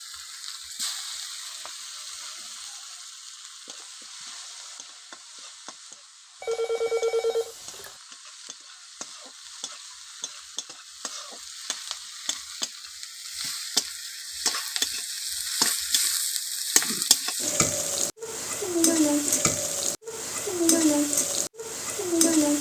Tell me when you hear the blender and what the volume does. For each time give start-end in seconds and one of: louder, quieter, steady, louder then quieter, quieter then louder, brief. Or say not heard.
not heard.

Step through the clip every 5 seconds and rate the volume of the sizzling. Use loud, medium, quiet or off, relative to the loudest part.
quiet, quiet, medium, loud, loud.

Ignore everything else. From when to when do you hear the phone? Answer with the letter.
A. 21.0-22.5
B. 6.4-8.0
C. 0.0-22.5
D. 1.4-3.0
B.